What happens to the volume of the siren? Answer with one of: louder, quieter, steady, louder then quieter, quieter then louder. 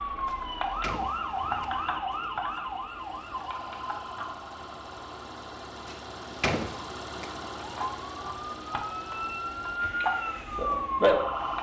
quieter then louder.